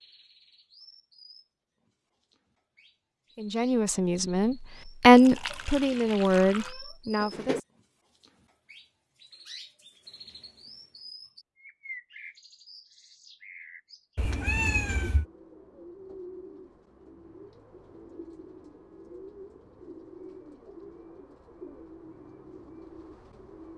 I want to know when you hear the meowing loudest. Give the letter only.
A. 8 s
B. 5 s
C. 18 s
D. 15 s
D.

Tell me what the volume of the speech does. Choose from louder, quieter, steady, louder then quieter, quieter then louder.
louder then quieter.